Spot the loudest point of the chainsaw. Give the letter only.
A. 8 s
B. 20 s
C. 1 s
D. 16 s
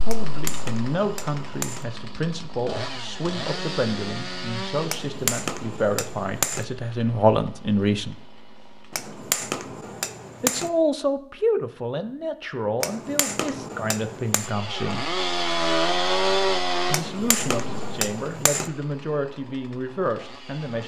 D.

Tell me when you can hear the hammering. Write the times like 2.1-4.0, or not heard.
0.1-1.9, 4.8-6.7, 8.9-10.7, 12.8-14.5, 16.9-18.7.